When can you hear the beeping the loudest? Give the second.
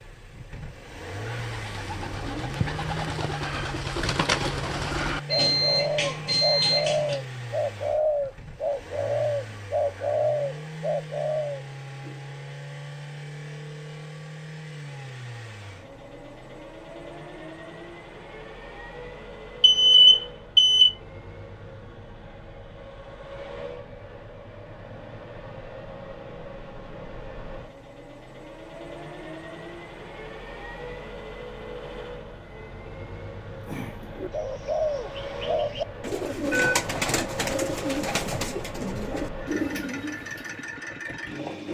20 s.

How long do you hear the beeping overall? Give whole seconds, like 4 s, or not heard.
5 s.